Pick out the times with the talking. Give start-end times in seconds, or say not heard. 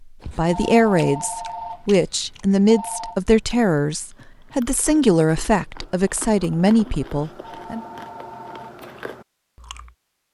0.2-7.8.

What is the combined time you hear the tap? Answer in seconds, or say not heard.
not heard.